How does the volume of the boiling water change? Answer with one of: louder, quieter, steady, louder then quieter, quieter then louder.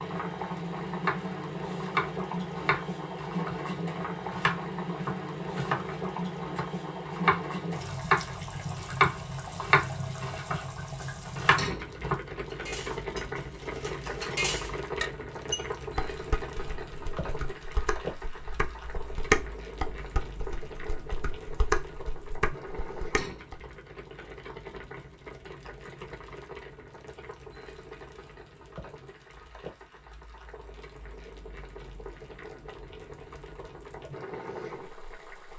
quieter.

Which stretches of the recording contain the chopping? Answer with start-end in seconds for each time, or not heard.
0.8-6.0, 6.5-12.2.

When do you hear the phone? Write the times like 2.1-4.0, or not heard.
not heard.